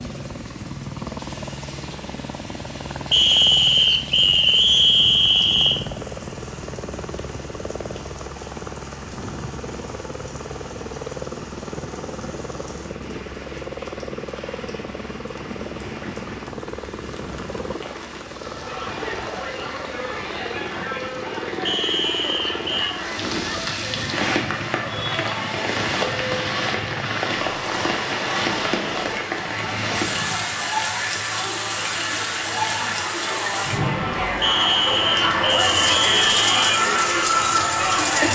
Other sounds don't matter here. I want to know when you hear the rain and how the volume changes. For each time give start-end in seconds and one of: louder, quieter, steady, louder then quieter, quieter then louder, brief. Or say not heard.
0.0-38.3 louder.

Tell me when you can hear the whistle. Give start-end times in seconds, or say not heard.
3.1-5.8, 21.6-22.9, 34.4-36.8.